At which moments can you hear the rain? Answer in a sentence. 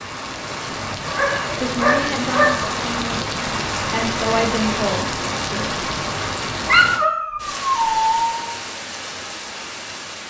The rain can be heard from 0.0 to 10.2 s.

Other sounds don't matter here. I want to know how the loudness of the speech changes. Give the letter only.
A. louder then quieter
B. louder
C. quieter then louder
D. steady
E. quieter
C.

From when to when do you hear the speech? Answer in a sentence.
You can hear the speech from 1.5 to 5.7 s.